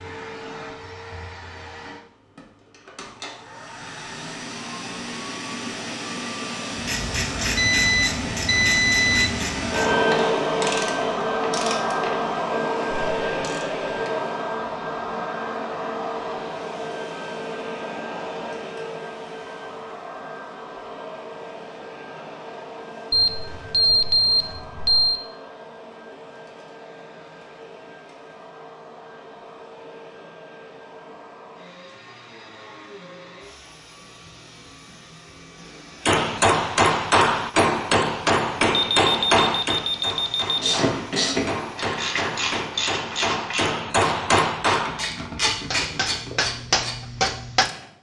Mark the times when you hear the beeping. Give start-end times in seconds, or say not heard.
7.5-9.3, 23.1-25.2, 38.7-40.6.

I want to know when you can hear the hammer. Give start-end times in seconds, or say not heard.
36.0-47.7.